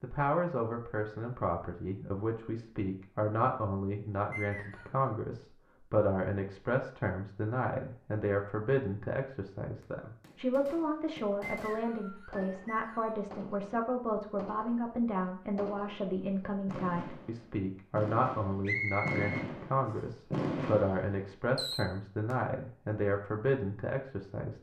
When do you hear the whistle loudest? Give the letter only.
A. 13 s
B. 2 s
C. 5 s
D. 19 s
D.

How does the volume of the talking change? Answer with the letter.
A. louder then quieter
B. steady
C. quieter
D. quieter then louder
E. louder
B.